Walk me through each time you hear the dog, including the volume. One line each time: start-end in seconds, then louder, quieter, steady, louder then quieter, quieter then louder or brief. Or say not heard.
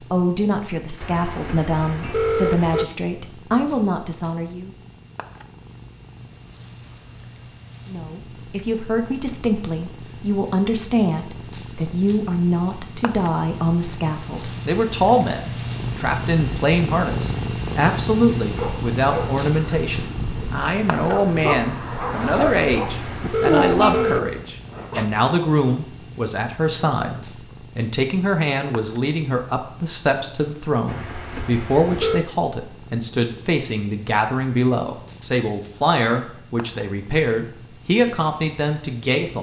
18.4-25.1 louder.